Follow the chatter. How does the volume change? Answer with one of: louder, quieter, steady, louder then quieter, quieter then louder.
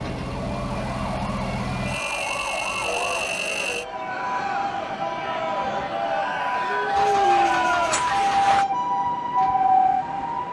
louder.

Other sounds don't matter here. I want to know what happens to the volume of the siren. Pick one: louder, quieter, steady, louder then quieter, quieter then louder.
louder.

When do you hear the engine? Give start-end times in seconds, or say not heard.
0.0-3.9, 7.0-10.3.